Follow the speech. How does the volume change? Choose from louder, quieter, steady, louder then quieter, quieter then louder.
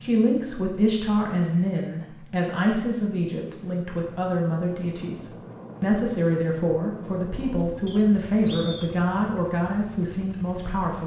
steady.